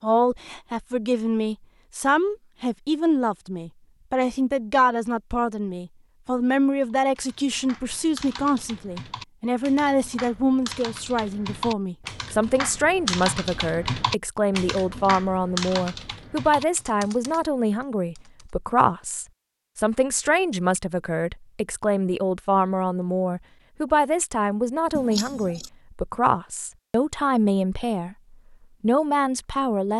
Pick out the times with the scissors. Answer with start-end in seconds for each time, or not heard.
24.9-25.7.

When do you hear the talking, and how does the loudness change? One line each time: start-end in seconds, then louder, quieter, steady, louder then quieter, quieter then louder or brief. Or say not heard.
0.0-28.1 steady
28.8-29.9 brief.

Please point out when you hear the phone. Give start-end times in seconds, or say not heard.
not heard.